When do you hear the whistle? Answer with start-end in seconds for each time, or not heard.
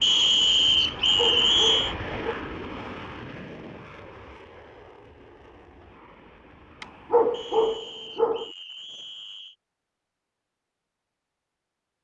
0.0-1.9, 7.3-9.6.